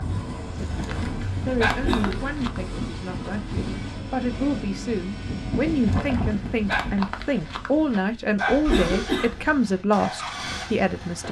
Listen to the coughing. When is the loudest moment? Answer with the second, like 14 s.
9 s.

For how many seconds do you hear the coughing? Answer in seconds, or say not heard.
2 s.